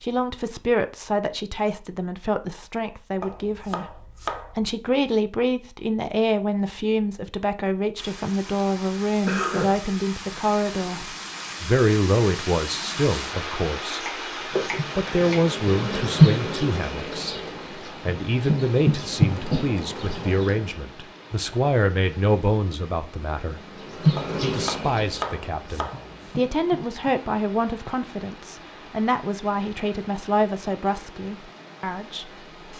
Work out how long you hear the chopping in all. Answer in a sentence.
You can hear the chopping for 5 seconds altogether.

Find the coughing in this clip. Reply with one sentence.
The coughing can be heard from 9.2 to 9.8 s.